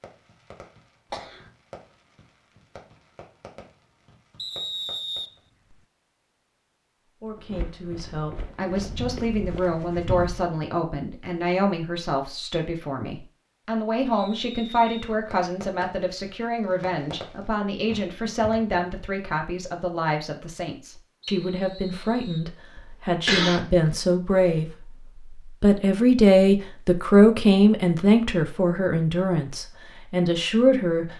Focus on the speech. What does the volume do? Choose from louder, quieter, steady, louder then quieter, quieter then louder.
louder.